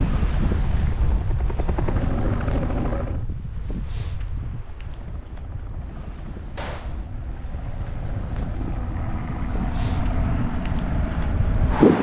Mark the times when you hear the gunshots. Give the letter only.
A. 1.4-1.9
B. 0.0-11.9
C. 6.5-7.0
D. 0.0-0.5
C.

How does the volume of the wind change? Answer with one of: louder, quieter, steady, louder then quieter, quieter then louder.
quieter then louder.